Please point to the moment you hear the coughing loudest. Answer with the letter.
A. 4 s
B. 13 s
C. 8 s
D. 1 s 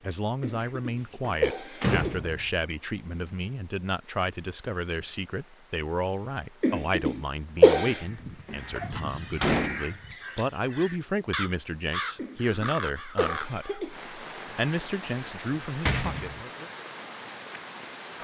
C.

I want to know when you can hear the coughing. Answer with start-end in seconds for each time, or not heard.
0.4-2.3, 6.6-8.0, 12.2-13.9.